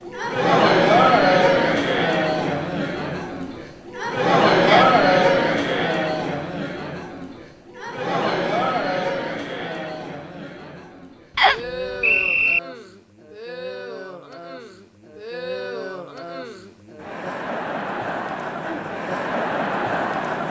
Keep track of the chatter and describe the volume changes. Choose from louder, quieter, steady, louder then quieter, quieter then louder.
quieter then louder.